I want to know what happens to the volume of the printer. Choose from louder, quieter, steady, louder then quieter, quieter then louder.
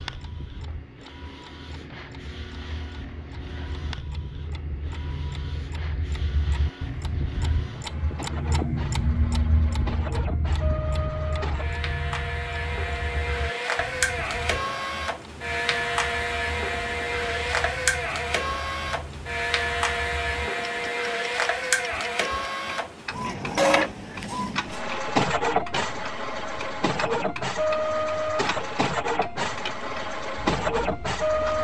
louder.